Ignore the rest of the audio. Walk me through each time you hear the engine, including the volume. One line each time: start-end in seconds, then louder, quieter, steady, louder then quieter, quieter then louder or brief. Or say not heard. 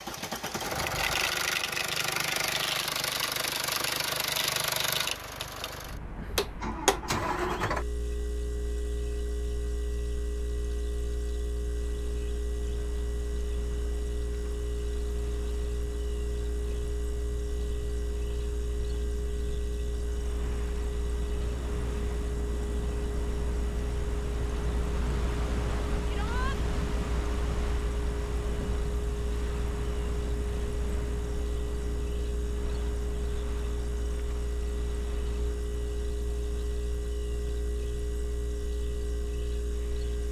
0.0-40.2 quieter.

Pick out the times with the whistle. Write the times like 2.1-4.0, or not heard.
not heard.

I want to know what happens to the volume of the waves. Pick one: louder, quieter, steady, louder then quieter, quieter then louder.
louder then quieter.